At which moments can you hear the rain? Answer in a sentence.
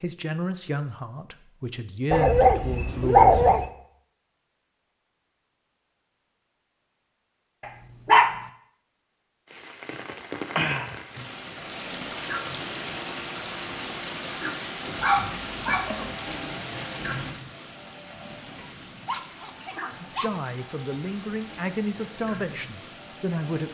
You can hear the rain from 9.5 to 23.6 s.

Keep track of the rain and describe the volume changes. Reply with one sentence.
The volume of the rain goes down.